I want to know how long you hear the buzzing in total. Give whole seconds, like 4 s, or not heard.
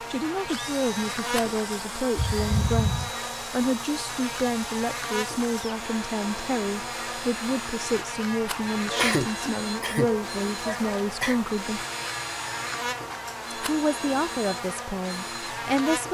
16 s.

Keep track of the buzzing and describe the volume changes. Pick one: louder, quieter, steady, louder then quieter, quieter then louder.
steady.